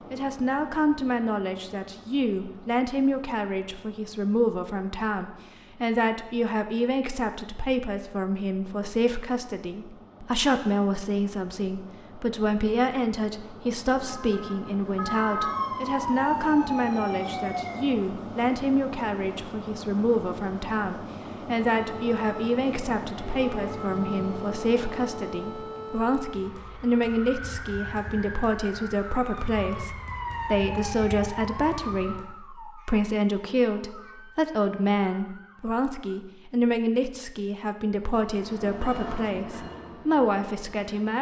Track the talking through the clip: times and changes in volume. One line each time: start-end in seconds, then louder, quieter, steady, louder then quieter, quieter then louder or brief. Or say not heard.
0.1-41.1 steady.